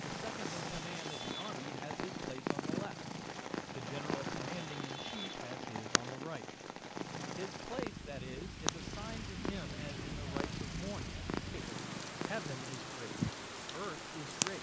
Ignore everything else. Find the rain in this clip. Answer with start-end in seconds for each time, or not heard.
0.0-14.5.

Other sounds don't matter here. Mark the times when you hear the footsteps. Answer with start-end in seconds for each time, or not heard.
not heard.